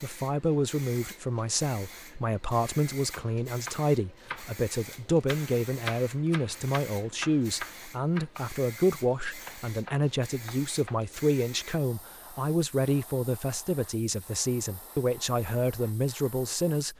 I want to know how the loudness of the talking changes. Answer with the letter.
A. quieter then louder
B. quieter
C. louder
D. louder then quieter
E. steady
E.